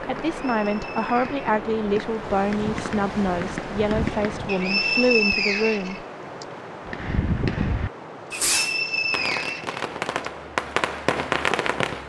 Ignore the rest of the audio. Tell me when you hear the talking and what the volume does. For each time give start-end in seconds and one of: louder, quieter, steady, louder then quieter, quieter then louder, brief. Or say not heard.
0.0-6.0 steady.